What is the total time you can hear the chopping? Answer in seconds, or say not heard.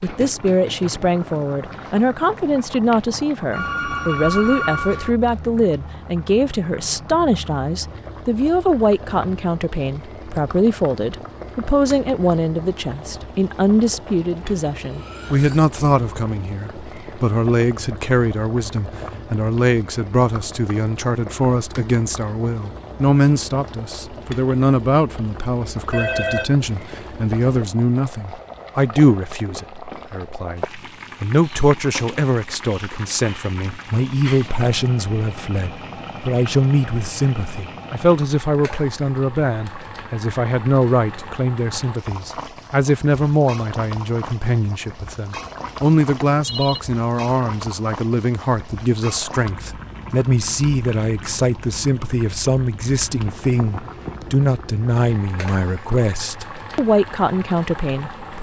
not heard.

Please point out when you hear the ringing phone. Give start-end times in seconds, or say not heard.
3.5-5.1, 25.9-27.4, 46.0-46.8.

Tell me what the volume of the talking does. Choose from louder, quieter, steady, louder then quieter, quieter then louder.
steady.